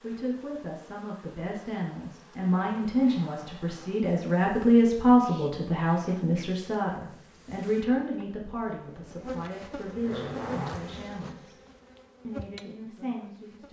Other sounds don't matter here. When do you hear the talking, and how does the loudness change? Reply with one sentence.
The talking can be heard from 0.0 to 11.6 s, getting louder then quieter; and briefly from 12.2 to 13.6 s.